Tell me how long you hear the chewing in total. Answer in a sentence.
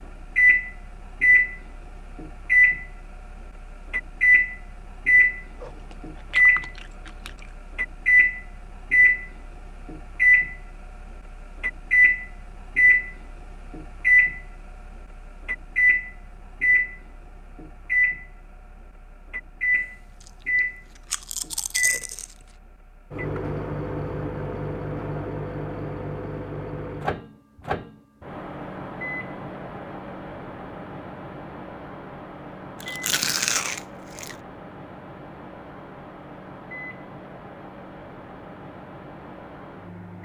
The chewing can be heard for 6 seconds in total.